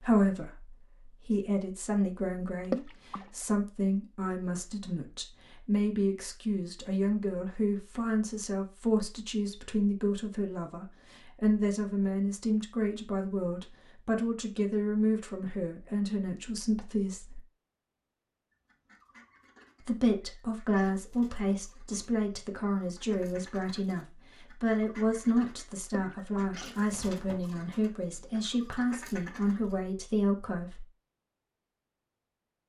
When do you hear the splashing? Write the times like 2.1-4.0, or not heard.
2.6-3.3, 25.9-26.5.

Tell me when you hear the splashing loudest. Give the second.
3 s.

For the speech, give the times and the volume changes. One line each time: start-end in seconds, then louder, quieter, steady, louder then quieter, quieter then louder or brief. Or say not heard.
0.0-17.4 steady
19.8-30.9 steady.